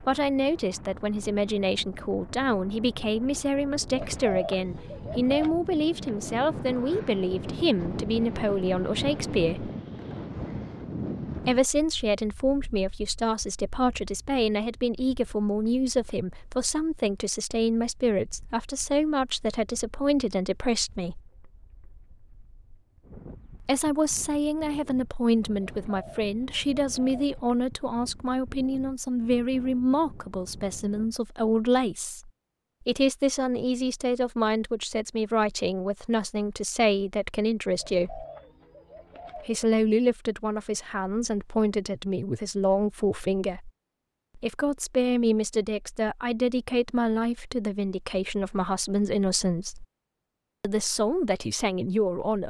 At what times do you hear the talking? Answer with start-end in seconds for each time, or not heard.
0.0-9.7, 11.4-21.2, 23.6-38.2, 39.4-43.7, 44.4-49.9, 50.6-52.4.